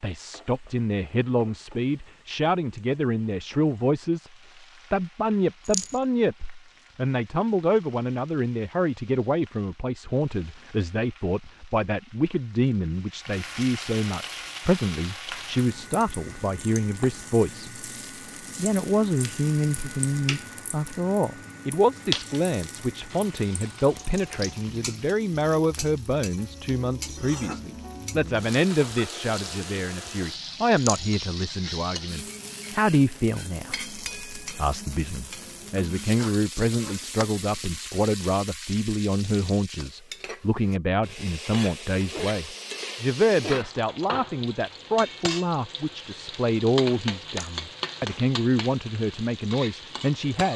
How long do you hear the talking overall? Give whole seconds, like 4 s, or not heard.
49 s.